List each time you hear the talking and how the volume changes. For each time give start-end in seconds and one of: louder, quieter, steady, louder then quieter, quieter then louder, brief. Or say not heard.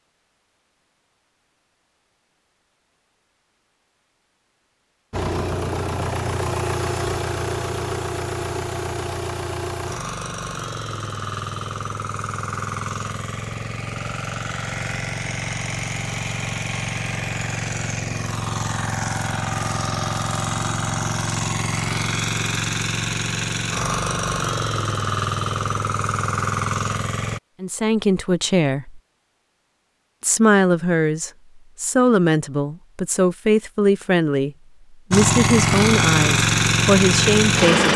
27.6-29.0 brief
30.2-37.9 steady.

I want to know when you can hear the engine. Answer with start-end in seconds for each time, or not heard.
5.1-27.4, 35.1-37.9.